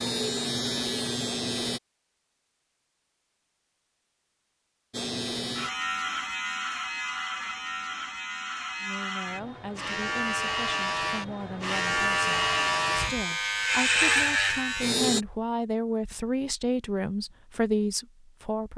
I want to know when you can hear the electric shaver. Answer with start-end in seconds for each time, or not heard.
0.0-1.8, 4.9-15.2.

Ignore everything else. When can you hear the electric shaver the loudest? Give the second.
14 s.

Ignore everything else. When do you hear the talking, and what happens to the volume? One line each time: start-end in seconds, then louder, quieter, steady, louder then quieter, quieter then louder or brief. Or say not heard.
8.8-18.7 louder.